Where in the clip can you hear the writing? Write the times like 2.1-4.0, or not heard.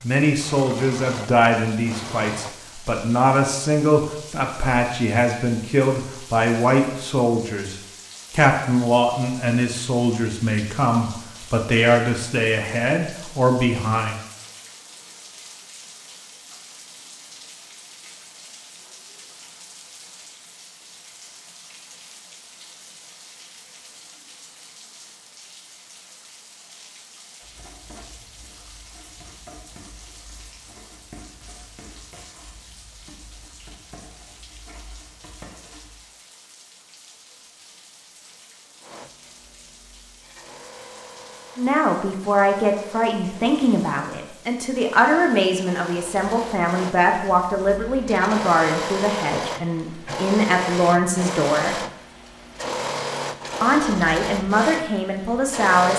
27.4-36.0.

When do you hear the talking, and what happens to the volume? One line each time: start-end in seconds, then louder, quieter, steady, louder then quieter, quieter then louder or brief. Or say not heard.
0.0-14.2 steady
41.5-51.8 steady
53.6-55.9 brief.